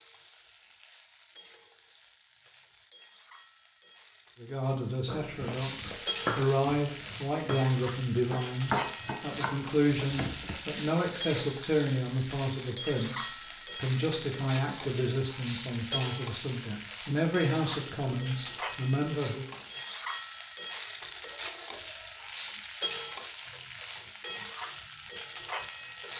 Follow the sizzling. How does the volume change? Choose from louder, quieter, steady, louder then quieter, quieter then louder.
louder.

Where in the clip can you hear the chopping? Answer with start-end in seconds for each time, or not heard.
5.1-10.6.